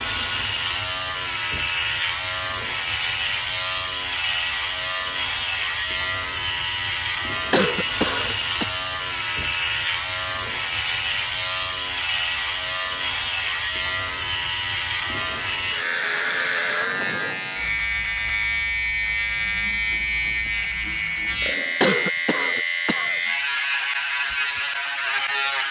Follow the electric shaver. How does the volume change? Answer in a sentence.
The volume of the electric shaver stays about the same.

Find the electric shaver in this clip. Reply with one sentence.
You can hear the electric shaver from 0.0 to 25.6 s.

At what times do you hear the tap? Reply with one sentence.
You can't hear the tap here.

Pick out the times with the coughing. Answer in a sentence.
The coughing can be heard from 7.5 to 8.7 s and from 21.8 to 23.2 s.